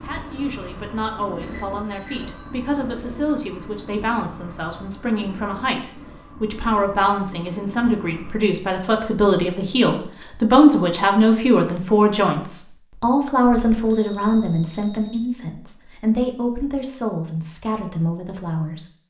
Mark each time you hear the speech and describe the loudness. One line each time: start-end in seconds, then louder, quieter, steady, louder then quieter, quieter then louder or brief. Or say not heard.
0.0-18.9 louder then quieter.